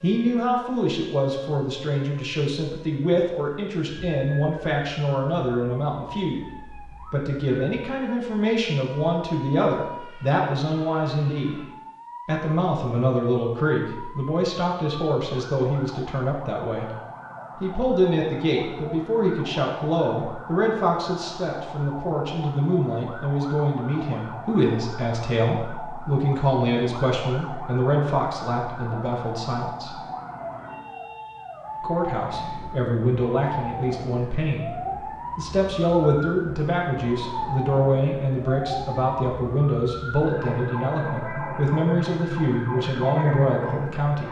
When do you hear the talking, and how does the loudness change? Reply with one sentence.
You can hear the talking from 0.0 to 11.6 s, at a steady volume; from 12.2 to 16.9 s, at a steady volume; from 17.6 to 29.9 s, at a steady volume; and from 31.8 to 44.2 s, at a steady volume.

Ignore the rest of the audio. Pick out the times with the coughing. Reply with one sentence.
The coughing can't be heard in this clip.